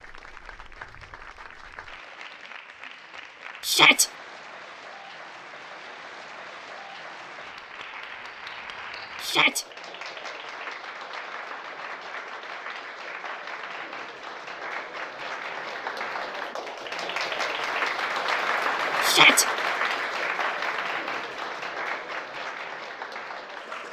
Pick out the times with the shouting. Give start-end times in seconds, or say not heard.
3.6-4.1, 9.2-9.7, 19.0-19.4.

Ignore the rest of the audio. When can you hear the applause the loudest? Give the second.
19 s.